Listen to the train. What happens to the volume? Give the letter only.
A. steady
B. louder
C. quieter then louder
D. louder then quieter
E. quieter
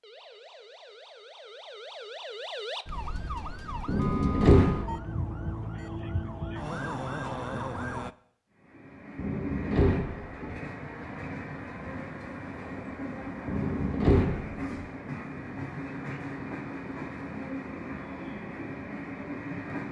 A.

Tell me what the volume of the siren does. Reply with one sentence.
The loudness of the siren goes up.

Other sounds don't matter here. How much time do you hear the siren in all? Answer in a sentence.
The siren can be heard for 8 seconds in total.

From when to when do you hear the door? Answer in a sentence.
You can hear the door from 3.9 to 5.0 s, from 9.2 to 10.6 s and from 13.4 to 14.8 s.